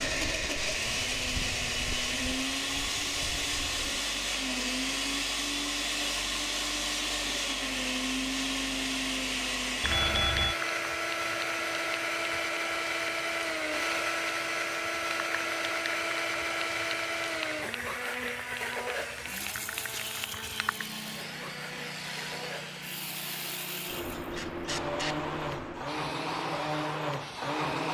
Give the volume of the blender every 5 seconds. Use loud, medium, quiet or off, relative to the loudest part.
loud, loud, loud, loud, medium, loud.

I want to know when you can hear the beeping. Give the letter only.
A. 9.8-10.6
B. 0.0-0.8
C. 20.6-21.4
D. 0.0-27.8
A.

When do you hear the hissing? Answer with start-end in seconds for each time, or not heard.
0.0-27.8.